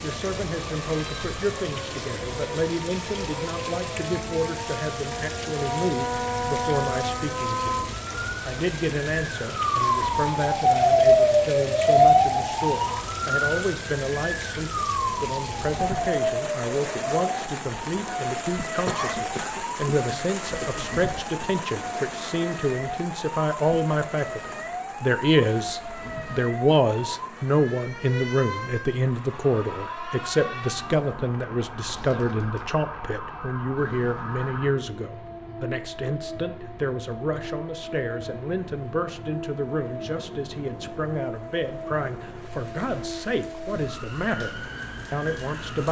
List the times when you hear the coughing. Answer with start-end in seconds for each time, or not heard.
18.9-20.9.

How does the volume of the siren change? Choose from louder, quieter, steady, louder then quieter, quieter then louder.
louder then quieter.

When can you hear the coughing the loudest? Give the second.
19 s.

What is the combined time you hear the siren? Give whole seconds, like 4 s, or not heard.
46 s.